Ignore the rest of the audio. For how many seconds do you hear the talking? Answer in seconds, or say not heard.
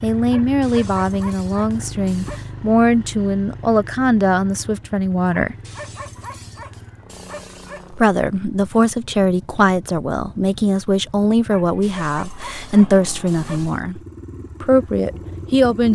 13 s.